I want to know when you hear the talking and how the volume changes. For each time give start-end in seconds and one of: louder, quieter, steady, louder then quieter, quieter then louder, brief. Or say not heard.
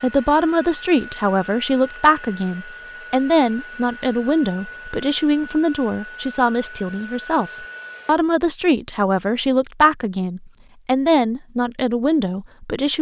0.0-12.9 steady.